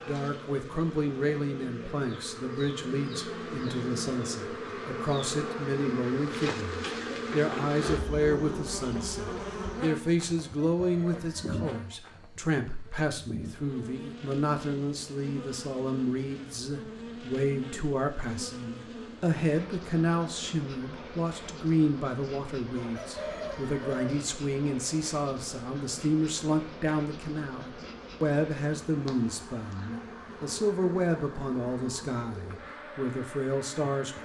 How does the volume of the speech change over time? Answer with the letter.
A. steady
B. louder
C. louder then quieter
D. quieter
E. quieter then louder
A.